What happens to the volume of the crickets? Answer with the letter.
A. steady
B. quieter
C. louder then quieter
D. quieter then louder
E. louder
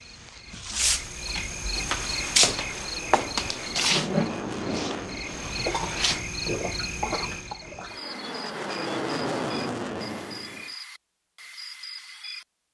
B.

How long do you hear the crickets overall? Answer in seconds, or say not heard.
13 s.